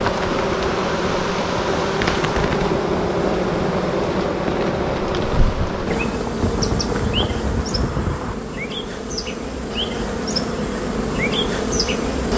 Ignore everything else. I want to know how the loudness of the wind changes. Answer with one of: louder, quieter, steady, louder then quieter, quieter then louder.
steady.